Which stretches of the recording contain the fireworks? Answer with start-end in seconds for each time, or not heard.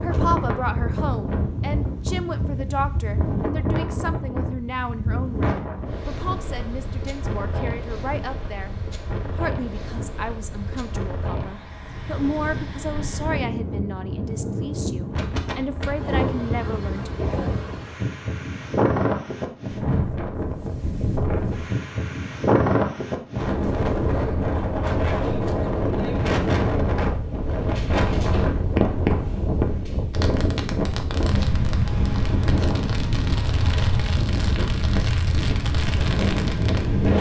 28.7-36.9.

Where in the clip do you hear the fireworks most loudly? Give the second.
29 s.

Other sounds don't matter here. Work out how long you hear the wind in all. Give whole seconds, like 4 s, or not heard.
37 s.